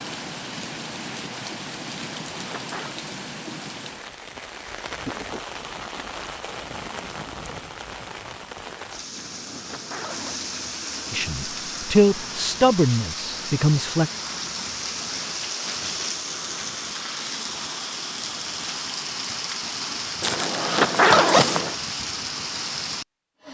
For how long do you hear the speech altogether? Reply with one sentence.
The speech can be heard for 3 seconds in total.